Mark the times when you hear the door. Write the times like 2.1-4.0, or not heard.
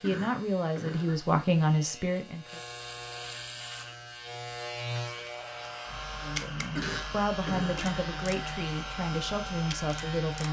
not heard.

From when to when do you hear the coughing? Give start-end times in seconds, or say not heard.
0.0-1.2, 6.8-8.0.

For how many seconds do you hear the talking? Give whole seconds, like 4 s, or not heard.
7 s.